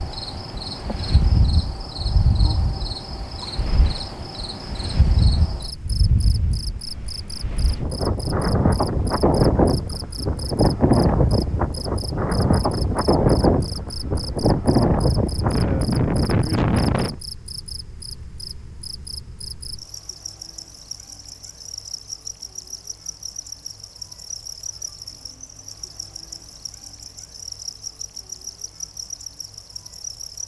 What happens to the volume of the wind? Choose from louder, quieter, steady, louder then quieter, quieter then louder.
louder.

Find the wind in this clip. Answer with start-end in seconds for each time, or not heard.
0.0-17.1.